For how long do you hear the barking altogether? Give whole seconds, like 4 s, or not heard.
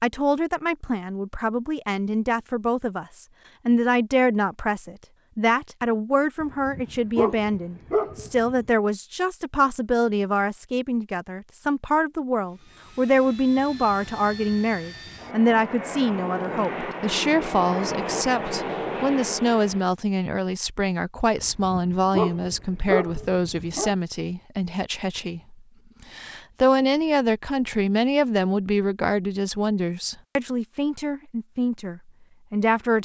5 s.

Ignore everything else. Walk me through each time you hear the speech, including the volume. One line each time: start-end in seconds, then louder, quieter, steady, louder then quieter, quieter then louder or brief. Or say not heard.
0.0-33.0 steady.